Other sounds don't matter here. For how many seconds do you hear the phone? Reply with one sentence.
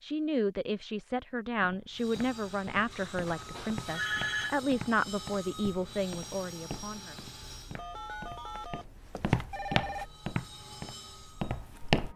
The phone can be heard for 4 seconds in total.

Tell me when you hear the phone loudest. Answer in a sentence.
The volume of the phone peaks at 4 seconds.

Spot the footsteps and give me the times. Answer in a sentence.
The footsteps can be heard from 1.4 to 12.1 s.